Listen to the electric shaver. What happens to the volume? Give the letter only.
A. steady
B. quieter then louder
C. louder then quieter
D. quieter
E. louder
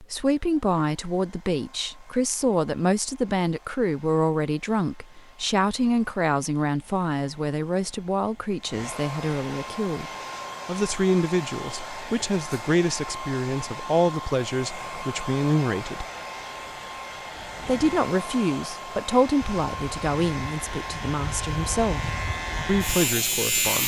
E.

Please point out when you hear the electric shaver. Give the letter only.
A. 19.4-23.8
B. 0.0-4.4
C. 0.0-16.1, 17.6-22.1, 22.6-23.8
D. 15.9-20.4
A.